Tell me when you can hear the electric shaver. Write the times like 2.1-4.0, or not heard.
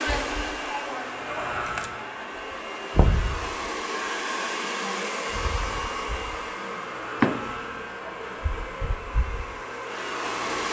0.0-4.1, 5.2-10.6.